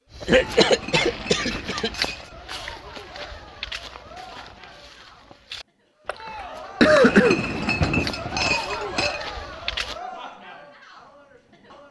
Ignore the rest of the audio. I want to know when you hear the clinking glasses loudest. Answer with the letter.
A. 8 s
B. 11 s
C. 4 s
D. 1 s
A.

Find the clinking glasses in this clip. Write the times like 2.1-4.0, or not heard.
0.4-2.4, 6.8-9.2.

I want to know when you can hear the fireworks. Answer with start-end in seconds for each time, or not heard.
not heard.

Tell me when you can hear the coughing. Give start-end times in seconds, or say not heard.
0.2-1.9, 6.0-7.9.